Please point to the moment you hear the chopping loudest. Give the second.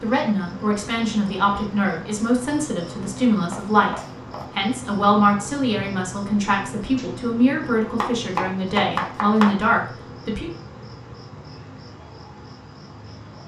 9 s.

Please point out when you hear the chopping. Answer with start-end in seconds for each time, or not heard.
3.5-4.5, 8.0-9.6.